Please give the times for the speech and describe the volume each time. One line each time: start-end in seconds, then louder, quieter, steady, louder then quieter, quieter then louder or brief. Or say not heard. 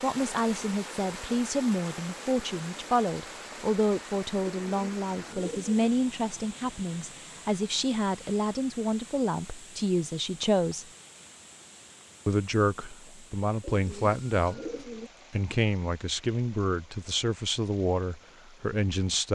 0.0-10.8 steady
12.2-14.7 brief
15.3-19.3 steady.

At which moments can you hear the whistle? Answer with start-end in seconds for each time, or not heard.
not heard.